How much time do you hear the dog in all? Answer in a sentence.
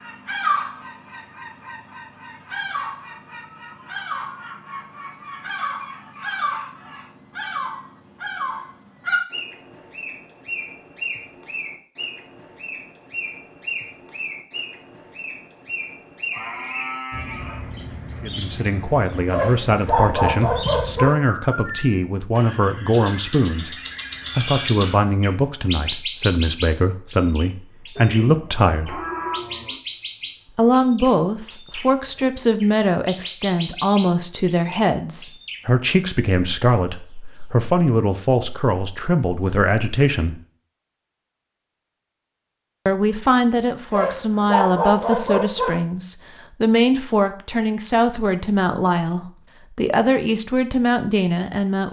The dog can be heard for 4 seconds in total.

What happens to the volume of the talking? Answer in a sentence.
The volume of the talking stays about the same.